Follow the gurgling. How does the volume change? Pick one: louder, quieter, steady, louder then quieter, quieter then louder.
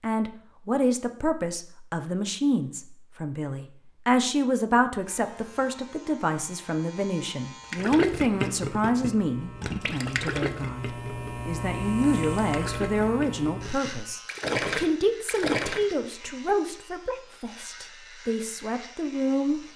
quieter then louder.